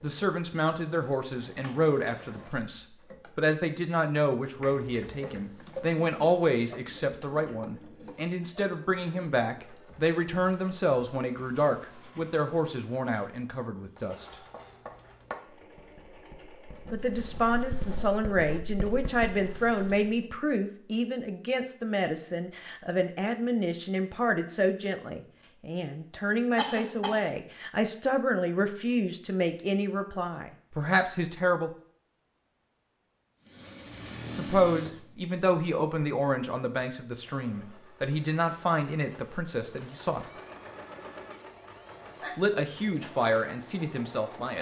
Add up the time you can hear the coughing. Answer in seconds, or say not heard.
3 s.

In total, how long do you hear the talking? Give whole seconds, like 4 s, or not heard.
37 s.